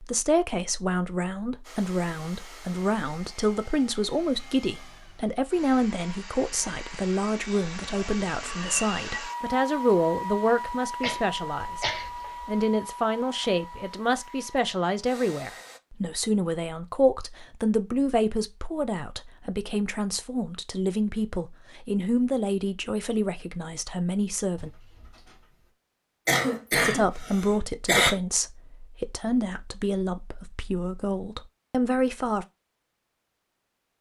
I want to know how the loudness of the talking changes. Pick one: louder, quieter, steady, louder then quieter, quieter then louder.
steady.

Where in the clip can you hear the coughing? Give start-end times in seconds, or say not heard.
11.0-12.5, 26.2-28.1.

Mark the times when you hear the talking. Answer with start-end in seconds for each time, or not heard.
0.0-24.7, 26.7-32.5.